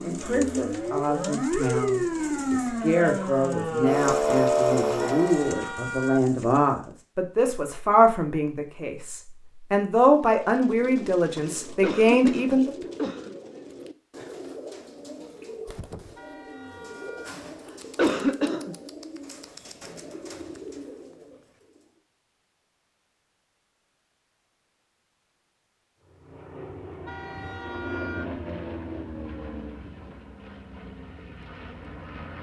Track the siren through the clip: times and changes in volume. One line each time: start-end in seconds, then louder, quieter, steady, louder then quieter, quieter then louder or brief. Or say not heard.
0.0-5.6 louder.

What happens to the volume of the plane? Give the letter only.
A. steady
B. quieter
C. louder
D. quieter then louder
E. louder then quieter
E.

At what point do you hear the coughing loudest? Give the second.
18 s.